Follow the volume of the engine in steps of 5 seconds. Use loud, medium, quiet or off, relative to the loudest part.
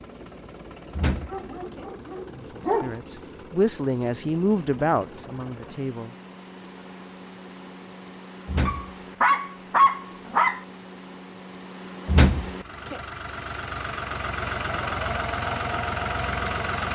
quiet, quiet, medium, loud.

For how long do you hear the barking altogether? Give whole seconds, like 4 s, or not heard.
4 s.